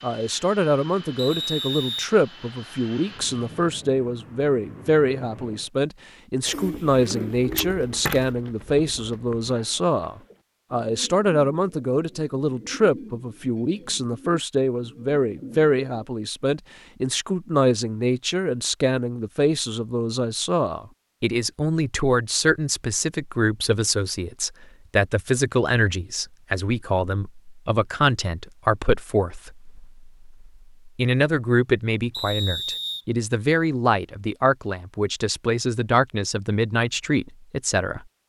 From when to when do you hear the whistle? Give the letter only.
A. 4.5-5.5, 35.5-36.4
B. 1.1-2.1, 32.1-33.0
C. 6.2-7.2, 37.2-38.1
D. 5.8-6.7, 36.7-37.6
B.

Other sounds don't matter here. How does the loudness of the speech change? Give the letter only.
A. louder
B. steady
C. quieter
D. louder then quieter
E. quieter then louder
B.